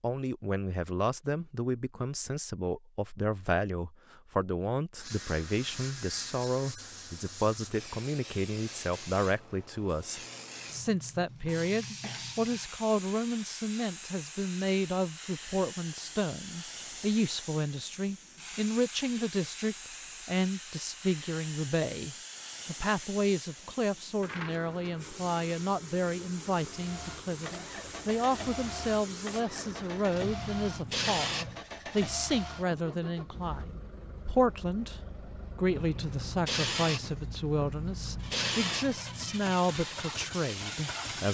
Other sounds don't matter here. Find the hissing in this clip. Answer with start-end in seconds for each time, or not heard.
5.0-31.6, 35.6-41.2.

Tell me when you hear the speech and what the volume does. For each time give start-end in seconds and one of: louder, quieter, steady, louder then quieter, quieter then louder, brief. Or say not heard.
0.0-41.2 steady.